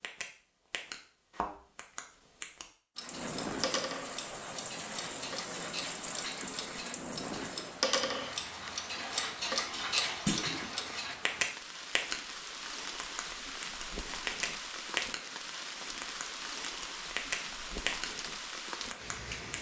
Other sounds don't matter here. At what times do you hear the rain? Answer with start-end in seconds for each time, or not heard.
3.0-19.5.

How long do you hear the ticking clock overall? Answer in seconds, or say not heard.
16 s.